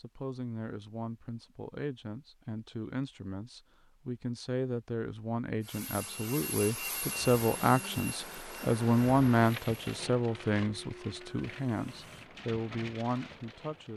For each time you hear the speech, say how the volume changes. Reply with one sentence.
You can hear the speech from 0.0 to 13.9 s, getting louder then quieter.